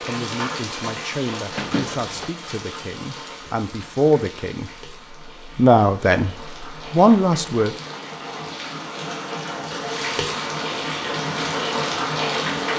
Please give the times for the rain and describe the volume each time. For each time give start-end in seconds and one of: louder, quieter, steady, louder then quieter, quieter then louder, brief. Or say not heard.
0.0-12.7 quieter then louder.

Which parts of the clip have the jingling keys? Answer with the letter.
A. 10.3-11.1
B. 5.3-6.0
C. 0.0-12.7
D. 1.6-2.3
D.